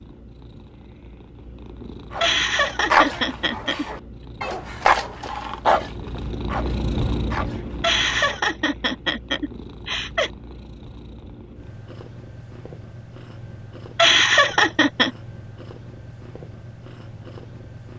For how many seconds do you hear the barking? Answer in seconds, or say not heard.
6 s.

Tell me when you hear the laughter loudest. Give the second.
14 s.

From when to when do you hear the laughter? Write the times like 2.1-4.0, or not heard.
2.2-3.9, 7.8-10.3, 13.9-15.1.